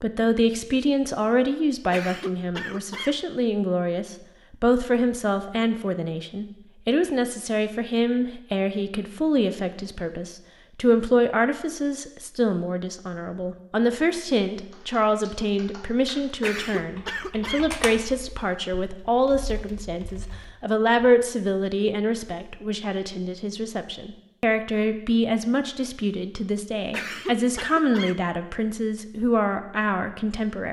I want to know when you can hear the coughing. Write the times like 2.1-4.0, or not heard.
1.9-3.2, 16.4-17.8, 26.9-28.2.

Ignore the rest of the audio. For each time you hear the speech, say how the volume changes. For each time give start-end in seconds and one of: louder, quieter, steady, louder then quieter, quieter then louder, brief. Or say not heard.
0.0-30.6 steady.